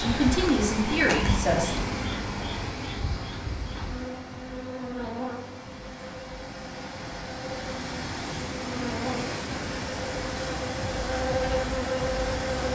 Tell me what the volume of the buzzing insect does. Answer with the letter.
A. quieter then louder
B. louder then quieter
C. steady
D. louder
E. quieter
A.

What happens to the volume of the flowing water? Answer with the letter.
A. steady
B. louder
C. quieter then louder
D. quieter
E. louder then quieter
C.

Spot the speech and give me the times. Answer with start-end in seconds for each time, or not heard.
0.0-1.8.